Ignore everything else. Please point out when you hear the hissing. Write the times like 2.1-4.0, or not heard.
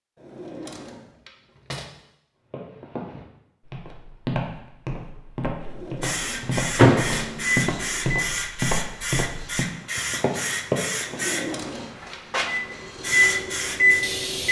6.0-14.4.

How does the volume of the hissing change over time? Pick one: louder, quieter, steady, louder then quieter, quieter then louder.
steady.